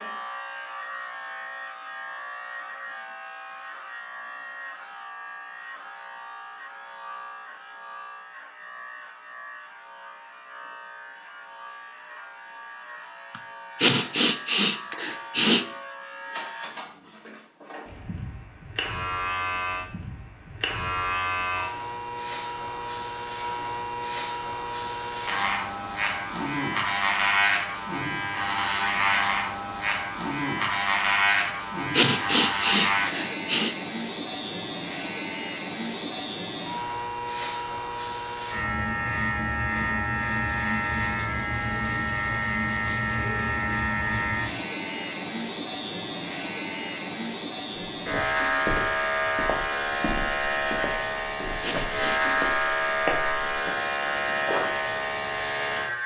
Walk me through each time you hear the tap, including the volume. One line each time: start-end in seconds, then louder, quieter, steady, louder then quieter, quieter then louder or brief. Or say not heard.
not heard.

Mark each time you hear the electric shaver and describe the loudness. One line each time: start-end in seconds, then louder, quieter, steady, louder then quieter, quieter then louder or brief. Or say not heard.
0.0-56.0 louder.